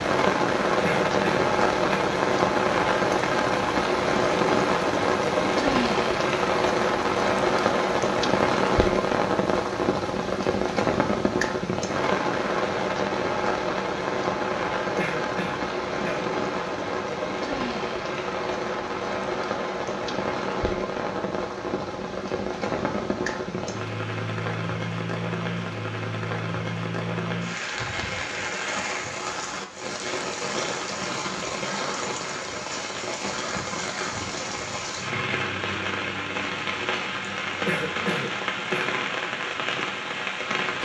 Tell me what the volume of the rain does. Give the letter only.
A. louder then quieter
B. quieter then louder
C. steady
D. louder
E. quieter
E.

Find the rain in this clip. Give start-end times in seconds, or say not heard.
0.0-40.8.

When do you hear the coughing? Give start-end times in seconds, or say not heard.
0.8-2.1, 14.9-16.2, 37.6-39.0.